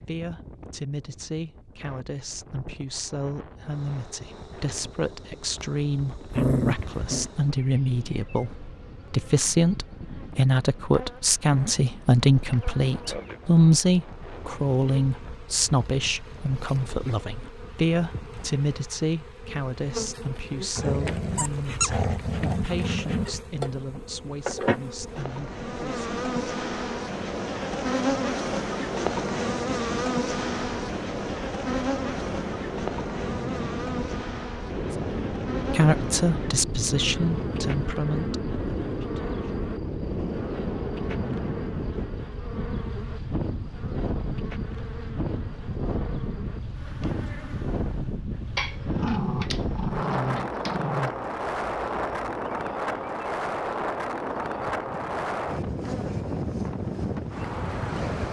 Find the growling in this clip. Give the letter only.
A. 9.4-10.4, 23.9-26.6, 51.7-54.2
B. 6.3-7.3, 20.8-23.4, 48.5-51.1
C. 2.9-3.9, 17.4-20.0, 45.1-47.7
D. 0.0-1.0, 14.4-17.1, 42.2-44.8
B.